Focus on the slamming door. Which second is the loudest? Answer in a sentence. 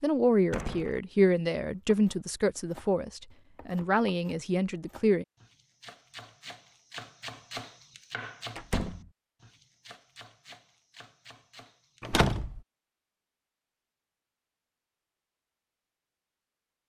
The volume of the slamming door peaks at 12 seconds.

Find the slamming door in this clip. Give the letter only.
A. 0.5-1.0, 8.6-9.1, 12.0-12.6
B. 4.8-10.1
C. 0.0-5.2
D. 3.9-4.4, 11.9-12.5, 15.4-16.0
A.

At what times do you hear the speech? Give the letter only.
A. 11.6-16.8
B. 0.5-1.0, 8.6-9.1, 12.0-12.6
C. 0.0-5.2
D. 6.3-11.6
C.